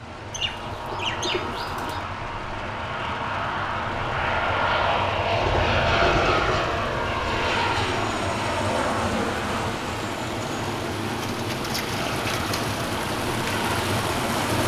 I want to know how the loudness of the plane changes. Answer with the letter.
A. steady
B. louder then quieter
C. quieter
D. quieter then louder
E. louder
B.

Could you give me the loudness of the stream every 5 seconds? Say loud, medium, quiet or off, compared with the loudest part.
medium, medium, loud.